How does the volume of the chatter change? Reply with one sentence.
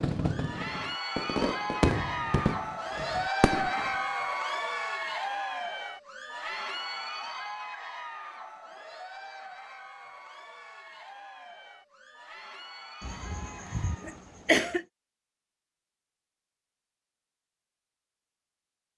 The volume of the chatter goes down.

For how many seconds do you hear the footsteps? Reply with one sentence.
The footsteps can't be heard in this clip.